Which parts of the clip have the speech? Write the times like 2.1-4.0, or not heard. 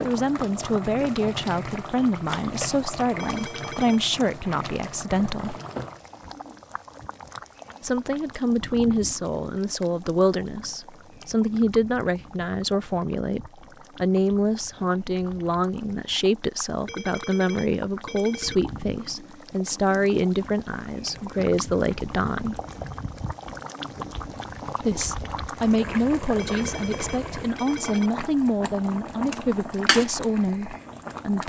0.0-5.5, 7.8-22.6, 24.8-31.4.